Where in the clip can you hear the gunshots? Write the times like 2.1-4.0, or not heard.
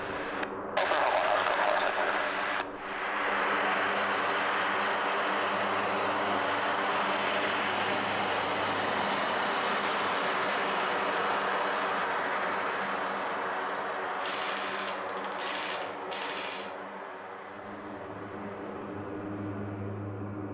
14.2-16.7.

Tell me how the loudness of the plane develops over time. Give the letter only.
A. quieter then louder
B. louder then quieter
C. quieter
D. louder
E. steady
C.